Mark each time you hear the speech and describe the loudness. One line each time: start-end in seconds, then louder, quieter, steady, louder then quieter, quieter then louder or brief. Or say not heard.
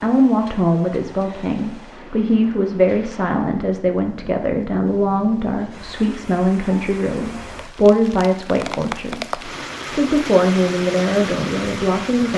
0.0-12.3 steady.